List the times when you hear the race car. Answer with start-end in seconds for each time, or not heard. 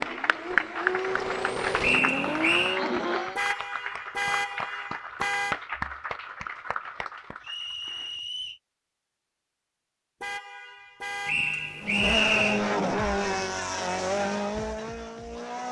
0.0-3.4, 11.8-15.6.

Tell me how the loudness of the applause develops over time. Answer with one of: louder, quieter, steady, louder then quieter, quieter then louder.
quieter.